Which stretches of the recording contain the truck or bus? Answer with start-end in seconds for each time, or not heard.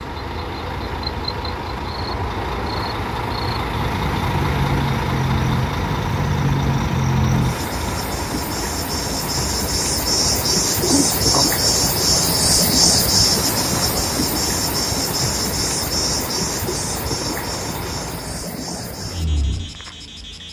0.0-18.4.